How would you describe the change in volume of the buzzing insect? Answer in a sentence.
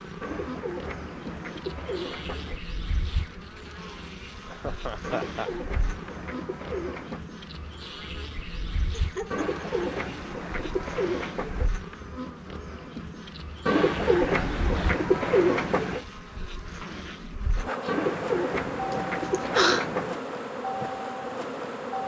The loudness of the buzzing insect goes up.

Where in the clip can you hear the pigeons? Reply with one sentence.
The pigeons can be heard from 0.2 to 2.6 s, from 5.0 to 7.2 s, from 9.3 to 11.7 s, from 13.7 to 16.1 s and from 17.9 to 20.2 s.